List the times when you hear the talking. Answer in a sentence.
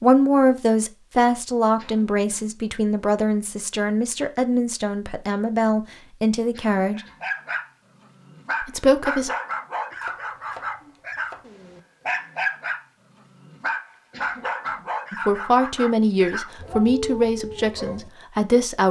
You can hear the talking from 0.0 to 7.0 s, from 8.6 to 9.3 s and from 15.1 to 18.8 s.